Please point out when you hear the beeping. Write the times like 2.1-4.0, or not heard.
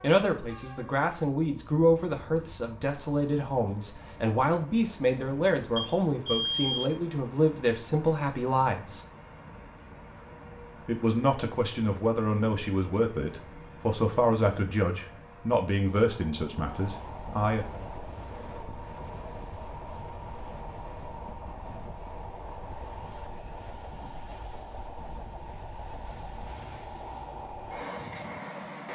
5.8-7.0.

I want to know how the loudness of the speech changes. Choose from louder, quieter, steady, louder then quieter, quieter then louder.
steady.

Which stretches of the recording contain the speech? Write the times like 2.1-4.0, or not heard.
0.0-9.0, 10.8-17.6.